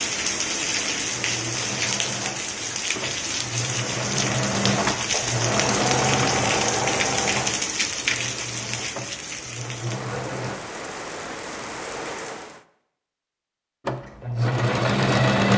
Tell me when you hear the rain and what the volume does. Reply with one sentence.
You can hear the rain from 0.0 to 12.6 s, getting quieter.